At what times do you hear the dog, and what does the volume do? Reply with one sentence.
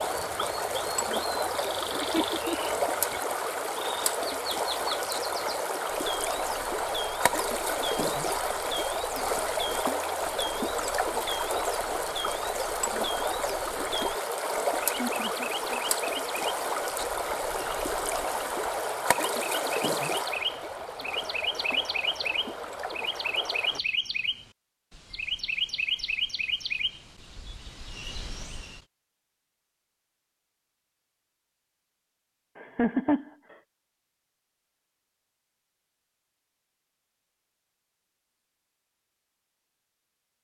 You can't hear the dog here.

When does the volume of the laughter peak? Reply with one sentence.
The volume of the laughter peaks at 33 seconds.